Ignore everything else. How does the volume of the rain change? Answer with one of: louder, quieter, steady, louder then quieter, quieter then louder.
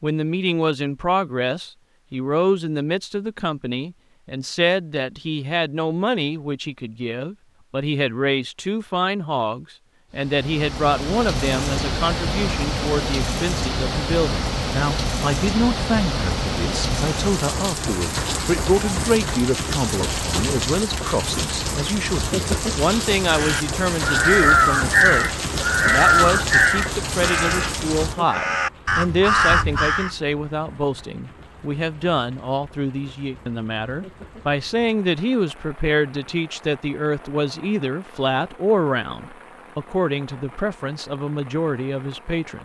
quieter.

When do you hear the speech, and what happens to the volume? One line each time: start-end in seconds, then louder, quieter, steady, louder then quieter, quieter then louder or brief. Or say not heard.
0.0-42.6 steady.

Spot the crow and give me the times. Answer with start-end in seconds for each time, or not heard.
23.2-30.1.